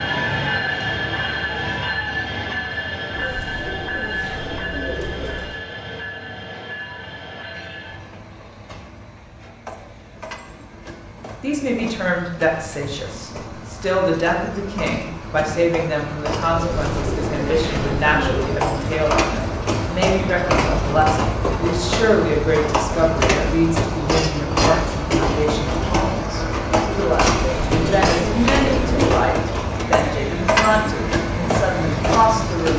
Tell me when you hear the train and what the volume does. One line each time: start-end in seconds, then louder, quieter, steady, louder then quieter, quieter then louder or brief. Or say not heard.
0.0-32.7 quieter then louder.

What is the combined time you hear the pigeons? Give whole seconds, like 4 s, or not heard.
6 s.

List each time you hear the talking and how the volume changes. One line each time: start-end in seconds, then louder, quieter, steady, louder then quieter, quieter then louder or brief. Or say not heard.
11.4-32.7 steady.